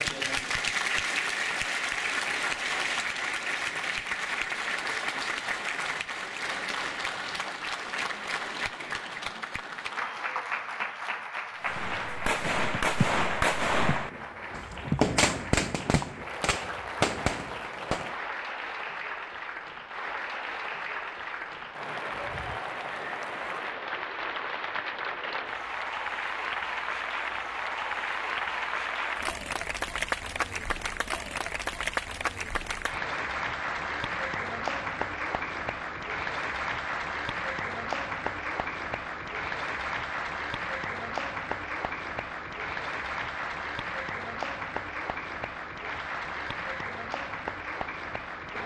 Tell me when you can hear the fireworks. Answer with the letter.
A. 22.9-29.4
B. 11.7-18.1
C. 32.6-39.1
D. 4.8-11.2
B.